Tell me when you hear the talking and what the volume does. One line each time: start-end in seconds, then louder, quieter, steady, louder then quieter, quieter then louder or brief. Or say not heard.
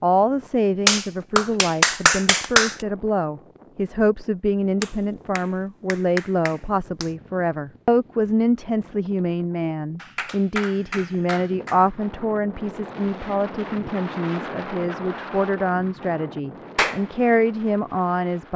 0.0-18.5 steady.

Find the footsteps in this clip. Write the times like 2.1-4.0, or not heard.
not heard.